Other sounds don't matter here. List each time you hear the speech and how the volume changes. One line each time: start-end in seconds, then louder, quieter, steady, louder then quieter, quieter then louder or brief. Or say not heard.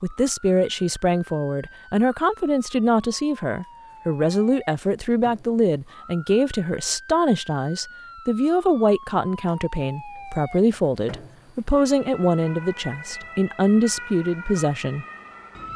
0.0-15.1 steady.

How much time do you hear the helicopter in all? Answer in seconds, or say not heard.
not heard.